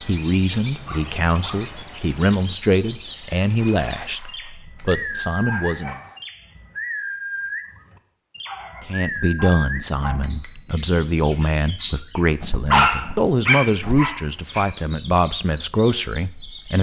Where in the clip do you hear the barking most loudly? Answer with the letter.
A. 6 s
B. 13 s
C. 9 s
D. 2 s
B.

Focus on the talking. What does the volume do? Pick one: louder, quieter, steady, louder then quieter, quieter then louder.
steady.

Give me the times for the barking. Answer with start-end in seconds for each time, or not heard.
0.7-1.7, 4.8-6.2, 8.4-10.2, 12.7-14.7.